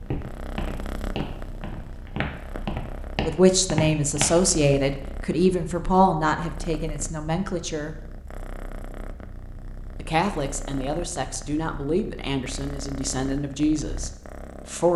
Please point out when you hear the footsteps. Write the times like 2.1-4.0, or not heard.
0.0-4.4.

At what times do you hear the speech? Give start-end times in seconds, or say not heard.
3.2-8.0, 9.9-14.9.